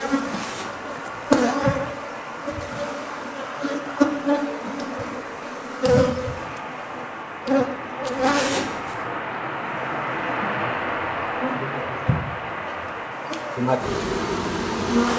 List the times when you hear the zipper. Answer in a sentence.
The zipper can be heard from 0.2 to 1.4 s and from 8.1 to 9.1 s.